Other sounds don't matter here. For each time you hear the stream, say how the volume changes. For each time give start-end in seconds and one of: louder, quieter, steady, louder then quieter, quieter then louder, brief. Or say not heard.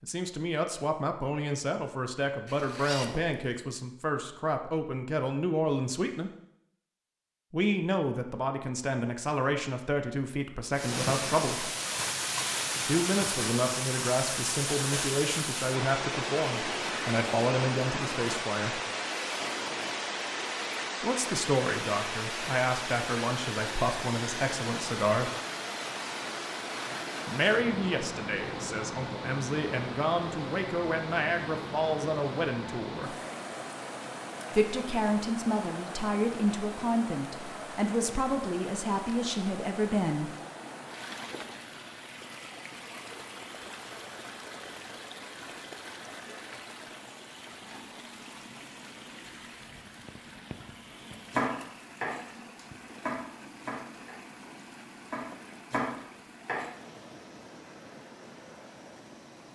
10.7-59.4 quieter.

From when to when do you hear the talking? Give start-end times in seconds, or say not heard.
0.0-6.3, 7.5-11.7, 12.8-18.8, 21.0-25.3, 27.2-33.1, 34.5-40.3.